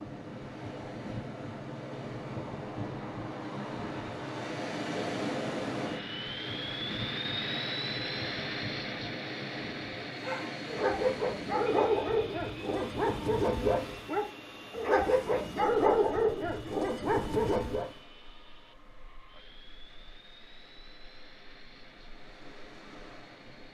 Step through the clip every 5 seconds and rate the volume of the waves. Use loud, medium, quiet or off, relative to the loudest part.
loud, loud, medium, quiet, quiet.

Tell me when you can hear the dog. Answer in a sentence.
You can hear the dog from 10.2 to 17.9 s.